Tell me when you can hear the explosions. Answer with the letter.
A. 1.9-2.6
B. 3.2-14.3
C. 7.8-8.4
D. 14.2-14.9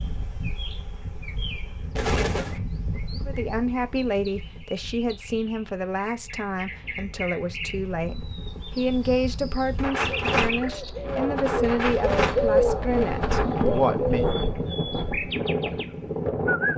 A.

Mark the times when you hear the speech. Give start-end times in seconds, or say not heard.
3.2-14.3.